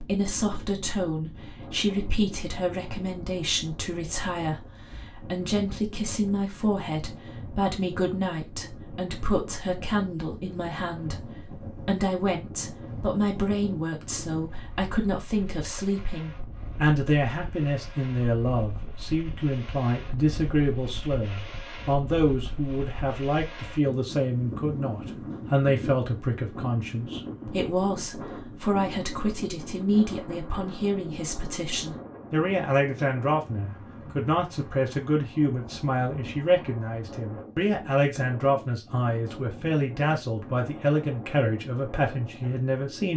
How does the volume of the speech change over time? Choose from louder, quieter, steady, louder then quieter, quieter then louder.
steady.